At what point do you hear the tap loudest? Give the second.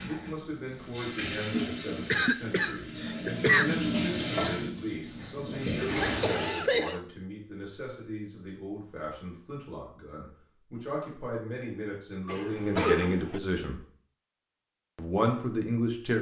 4 s.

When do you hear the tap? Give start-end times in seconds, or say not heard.
0.0-6.6.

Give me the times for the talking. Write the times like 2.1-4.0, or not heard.
0.0-13.8, 14.9-16.1.